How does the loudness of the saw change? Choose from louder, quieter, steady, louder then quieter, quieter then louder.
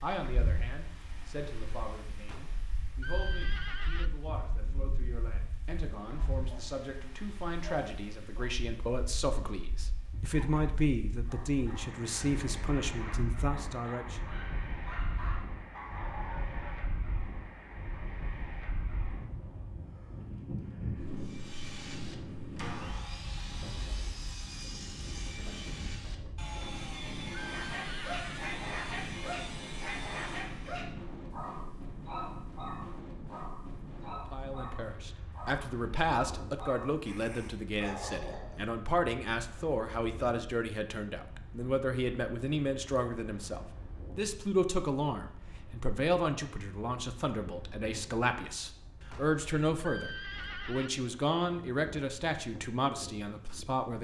steady.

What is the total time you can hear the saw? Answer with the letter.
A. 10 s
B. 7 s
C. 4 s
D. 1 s
A.